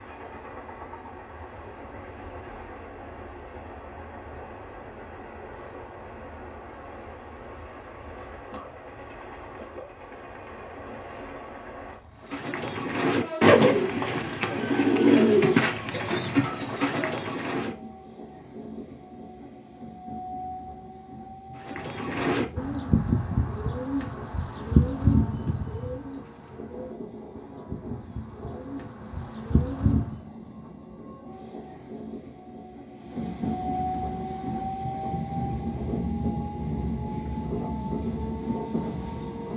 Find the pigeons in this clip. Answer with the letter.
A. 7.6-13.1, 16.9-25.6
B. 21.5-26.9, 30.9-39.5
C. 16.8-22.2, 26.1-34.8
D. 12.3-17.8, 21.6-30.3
D.